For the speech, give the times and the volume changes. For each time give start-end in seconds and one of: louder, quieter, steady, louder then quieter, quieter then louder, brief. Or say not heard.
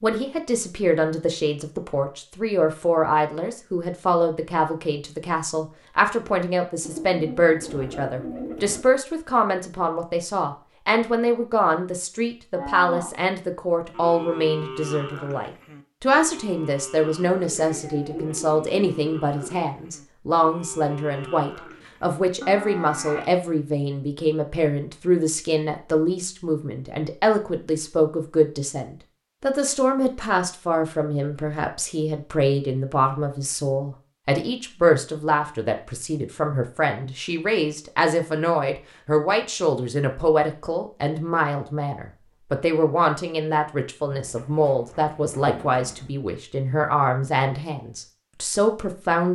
0.0-49.3 steady.